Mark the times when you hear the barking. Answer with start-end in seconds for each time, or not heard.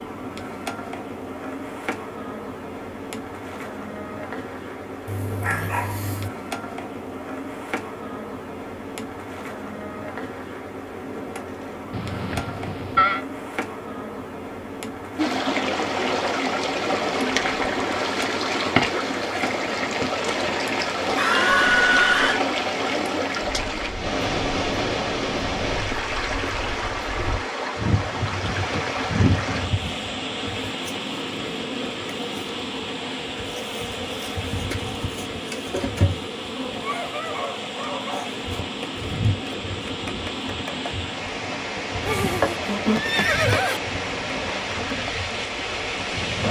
5.0-6.3, 36.8-38.3.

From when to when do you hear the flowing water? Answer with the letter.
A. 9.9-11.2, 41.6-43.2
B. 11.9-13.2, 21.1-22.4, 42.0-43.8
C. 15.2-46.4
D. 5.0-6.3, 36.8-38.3
C.